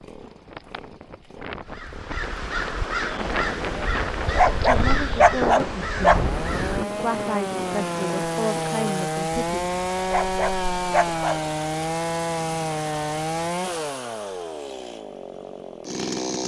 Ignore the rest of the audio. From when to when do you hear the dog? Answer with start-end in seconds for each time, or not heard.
4.2-6.2, 9.9-11.4.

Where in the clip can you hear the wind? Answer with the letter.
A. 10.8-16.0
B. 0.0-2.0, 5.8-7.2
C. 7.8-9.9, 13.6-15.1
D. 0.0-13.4
D.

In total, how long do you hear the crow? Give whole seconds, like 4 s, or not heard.
5 s.